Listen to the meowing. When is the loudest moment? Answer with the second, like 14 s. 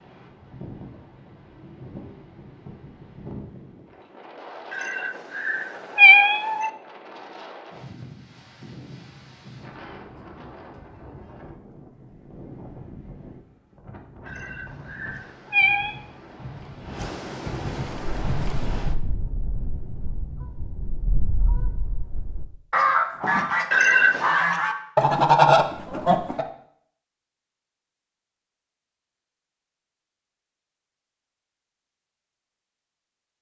6 s.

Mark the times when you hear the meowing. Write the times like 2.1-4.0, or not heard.
4.7-6.7, 14.2-15.9, 23.7-24.4.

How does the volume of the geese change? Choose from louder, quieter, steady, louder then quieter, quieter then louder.
louder.